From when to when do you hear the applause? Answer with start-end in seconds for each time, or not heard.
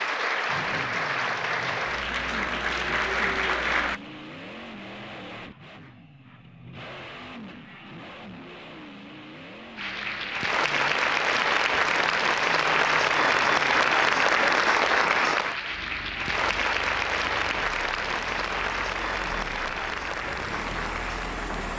0.0-4.0, 9.8-21.7.